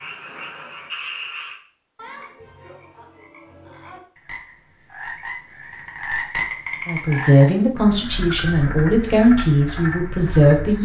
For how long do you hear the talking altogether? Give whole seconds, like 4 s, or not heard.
4 s.